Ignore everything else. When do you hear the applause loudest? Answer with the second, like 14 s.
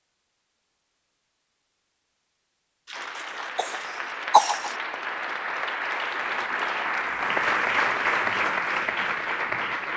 8 s.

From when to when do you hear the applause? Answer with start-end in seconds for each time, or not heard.
2.9-9.9.